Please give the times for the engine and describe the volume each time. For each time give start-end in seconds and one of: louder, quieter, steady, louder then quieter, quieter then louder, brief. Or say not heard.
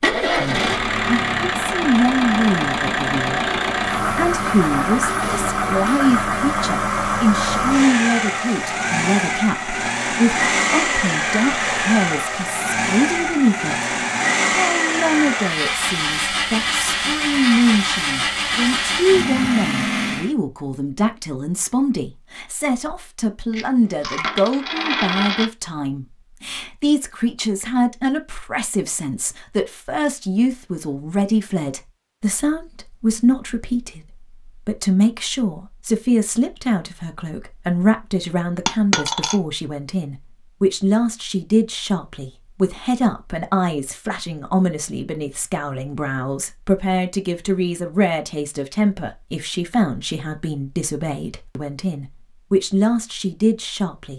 0.0-20.3 steady.